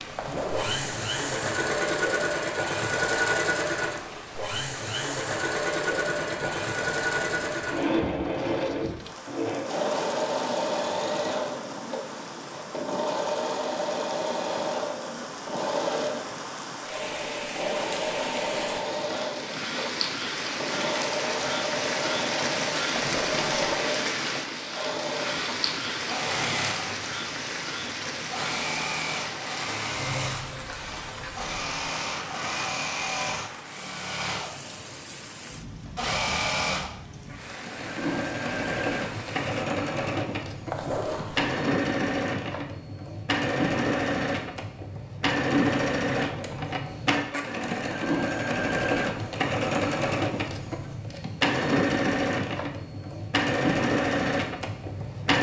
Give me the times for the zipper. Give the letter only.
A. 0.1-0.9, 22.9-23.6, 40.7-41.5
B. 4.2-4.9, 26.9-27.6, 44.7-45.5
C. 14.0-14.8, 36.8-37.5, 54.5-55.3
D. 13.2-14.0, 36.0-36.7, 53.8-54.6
A.